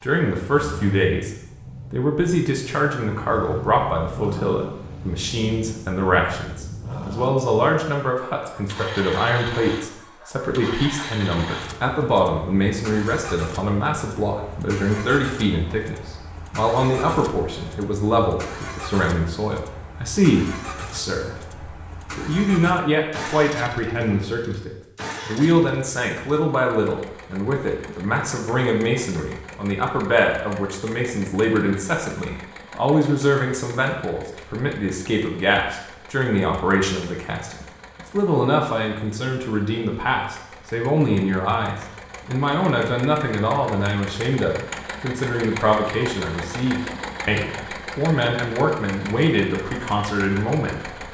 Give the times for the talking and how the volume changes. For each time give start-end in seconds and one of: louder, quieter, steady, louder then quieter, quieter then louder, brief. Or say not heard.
0.0-1.3 brief
1.9-51.0 steady.